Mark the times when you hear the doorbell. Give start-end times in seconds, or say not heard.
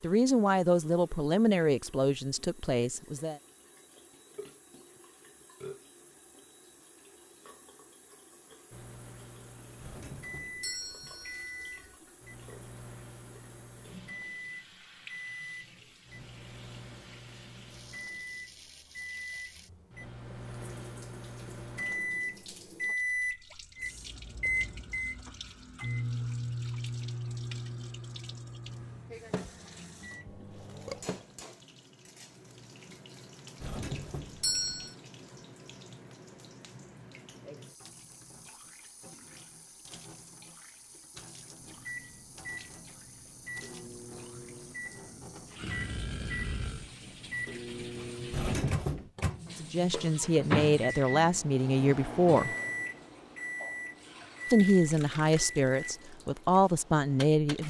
9.8-11.9, 33.6-35.0, 48.3-49.1.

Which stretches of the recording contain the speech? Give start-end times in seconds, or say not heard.
0.0-3.4, 49.5-52.5, 54.5-57.6.